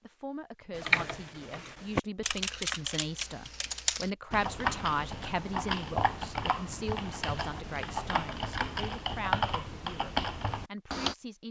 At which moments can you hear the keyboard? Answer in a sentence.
You can hear the keyboard from 0.8 to 11.2 s.